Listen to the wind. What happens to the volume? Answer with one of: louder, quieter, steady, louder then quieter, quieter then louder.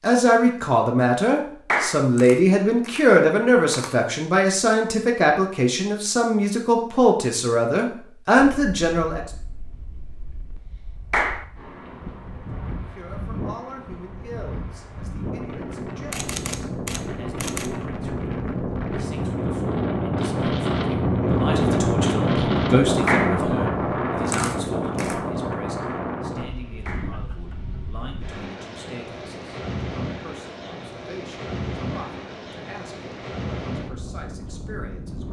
louder then quieter.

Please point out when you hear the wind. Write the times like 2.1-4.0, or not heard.
8.3-35.2.